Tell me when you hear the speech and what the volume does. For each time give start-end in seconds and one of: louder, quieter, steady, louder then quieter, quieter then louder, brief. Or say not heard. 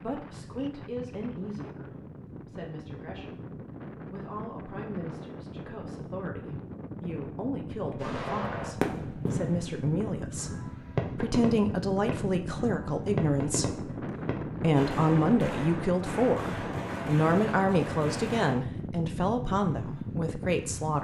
0.0-20.9 louder.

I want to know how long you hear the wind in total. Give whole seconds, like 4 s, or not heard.
21 s.